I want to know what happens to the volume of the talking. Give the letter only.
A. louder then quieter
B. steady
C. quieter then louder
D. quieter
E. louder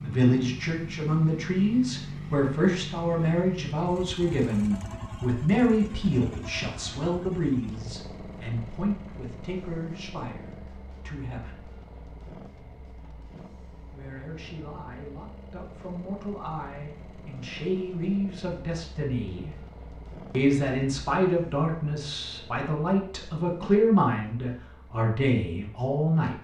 C.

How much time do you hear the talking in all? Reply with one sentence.
You can hear the talking for 23 seconds altogether.